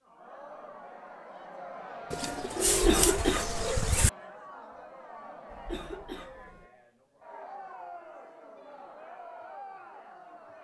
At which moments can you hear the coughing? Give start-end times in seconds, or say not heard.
2.6-3.7, 5.5-6.7.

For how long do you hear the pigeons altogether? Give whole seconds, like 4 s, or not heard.
2 s.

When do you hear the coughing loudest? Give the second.
3 s.